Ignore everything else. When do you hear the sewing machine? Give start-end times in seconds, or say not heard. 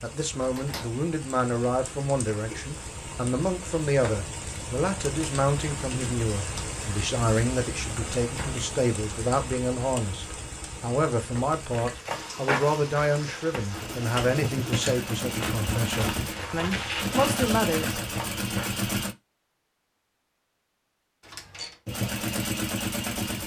13.6-19.1, 21.9-23.4.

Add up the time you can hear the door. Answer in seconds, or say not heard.
2 s.